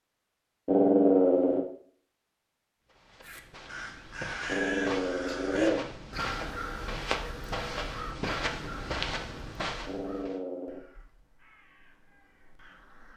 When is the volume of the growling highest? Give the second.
1 s.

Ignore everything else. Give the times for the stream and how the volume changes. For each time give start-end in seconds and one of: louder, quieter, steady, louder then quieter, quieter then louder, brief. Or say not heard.
not heard.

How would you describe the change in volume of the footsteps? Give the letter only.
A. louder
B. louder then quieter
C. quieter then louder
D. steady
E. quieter
A.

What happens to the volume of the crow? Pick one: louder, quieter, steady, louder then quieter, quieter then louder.
quieter.